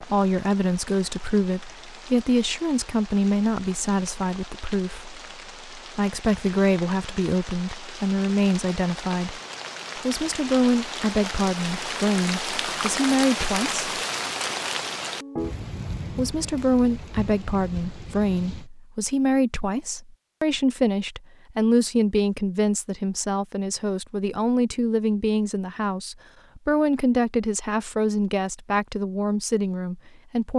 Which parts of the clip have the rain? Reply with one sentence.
You can hear the rain from 0.0 to 18.7 s.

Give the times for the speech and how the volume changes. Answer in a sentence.
You can hear the speech from 0.0 to 13.8 s, at a steady volume; and from 16.1 to 30.5 s, at a steady volume.